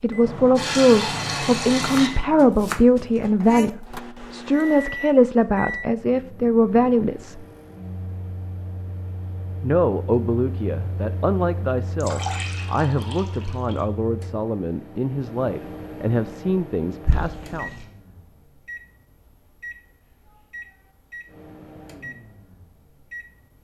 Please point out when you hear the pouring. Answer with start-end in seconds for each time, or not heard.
0.2-2.1, 12.0-13.8, 17.1-17.9.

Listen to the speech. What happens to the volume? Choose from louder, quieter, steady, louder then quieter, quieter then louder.
quieter.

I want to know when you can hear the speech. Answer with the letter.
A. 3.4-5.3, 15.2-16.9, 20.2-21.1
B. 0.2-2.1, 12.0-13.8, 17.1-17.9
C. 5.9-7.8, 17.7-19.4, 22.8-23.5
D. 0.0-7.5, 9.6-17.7
D.